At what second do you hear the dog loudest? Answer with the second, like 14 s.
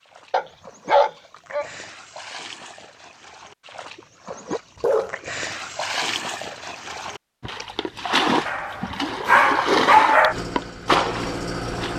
10 s.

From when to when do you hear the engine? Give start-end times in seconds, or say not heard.
10.2-11.9.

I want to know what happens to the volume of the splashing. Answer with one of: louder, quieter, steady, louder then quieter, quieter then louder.
louder.